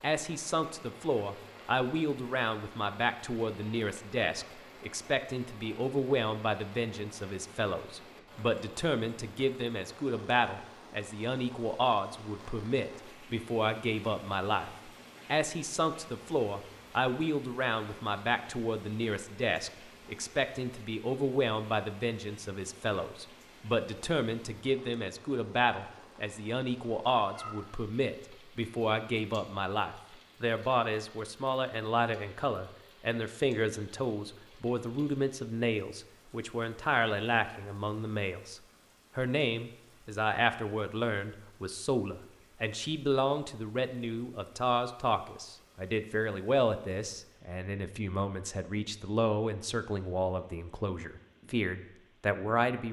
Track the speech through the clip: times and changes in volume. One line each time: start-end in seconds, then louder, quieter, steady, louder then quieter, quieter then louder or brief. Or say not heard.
0.0-52.8 steady.